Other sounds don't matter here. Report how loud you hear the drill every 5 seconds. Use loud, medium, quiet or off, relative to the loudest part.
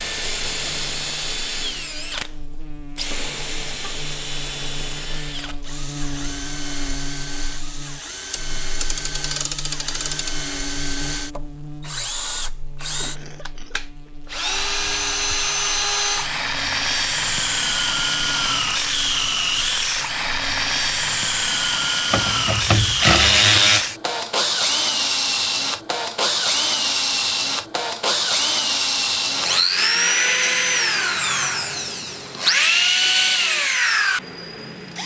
medium, quiet, medium, loud, loud, loud, loud.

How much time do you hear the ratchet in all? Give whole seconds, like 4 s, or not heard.
4 s.